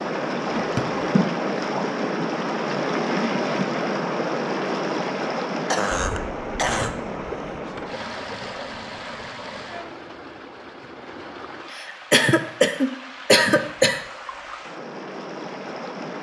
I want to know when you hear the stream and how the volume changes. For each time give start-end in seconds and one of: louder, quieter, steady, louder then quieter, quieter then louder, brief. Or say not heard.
0.0-16.1 quieter.